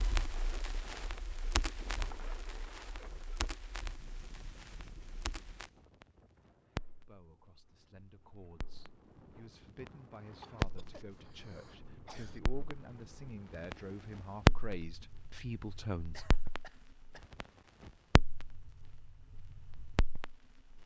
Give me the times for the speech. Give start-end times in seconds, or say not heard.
7.0-16.2.